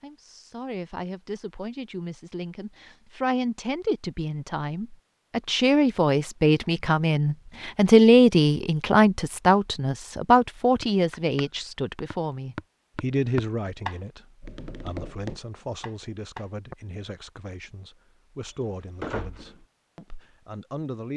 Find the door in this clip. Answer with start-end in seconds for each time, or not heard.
18.5-19.6.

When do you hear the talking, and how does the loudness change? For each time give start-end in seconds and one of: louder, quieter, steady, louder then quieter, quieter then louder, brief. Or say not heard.
0.0-21.1 louder then quieter.